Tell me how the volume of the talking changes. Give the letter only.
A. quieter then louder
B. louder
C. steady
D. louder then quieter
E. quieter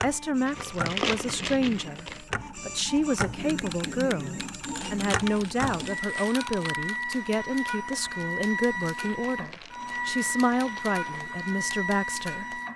C.